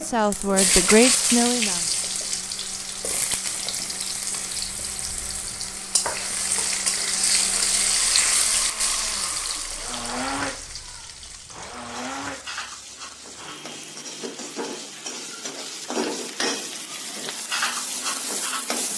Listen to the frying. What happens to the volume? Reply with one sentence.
The volume of the frying goes down, then up.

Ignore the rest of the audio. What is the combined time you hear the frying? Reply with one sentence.
The frying can be heard for 19 seconds in total.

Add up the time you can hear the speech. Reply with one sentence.
You can hear the speech for 2 seconds altogether.